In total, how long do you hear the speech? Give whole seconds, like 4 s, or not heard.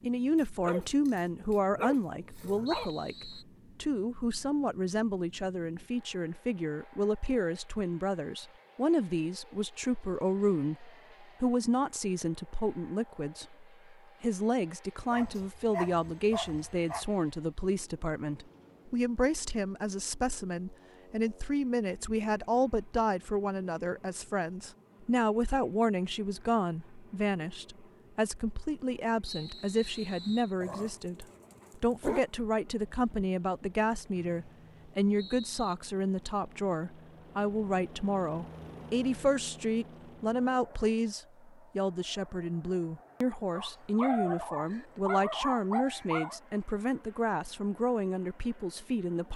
49 s.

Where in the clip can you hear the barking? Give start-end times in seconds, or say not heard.
0.3-2.9, 15.1-17.1, 30.6-32.2, 43.5-46.4.